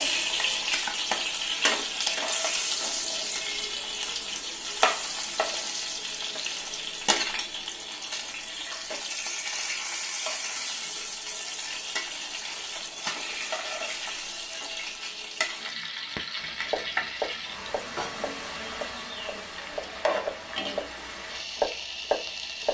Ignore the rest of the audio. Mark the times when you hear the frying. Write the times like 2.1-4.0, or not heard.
0.0-22.7.